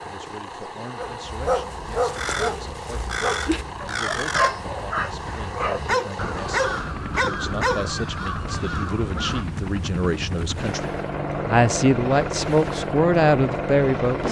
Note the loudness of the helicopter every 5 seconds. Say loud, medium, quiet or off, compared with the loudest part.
medium, medium, loud.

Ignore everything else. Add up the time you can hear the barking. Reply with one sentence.
You can hear the barking for 7 seconds altogether.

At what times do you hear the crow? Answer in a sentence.
The crow can be heard from 2.1 to 9.4 s.